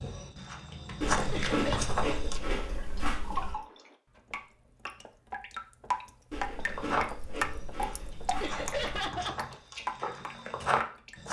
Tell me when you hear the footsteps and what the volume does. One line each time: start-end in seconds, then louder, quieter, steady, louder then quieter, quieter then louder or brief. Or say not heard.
0.0-2.4 brief
6.6-11.2 quieter then louder.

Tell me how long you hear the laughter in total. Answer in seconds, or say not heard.
2 s.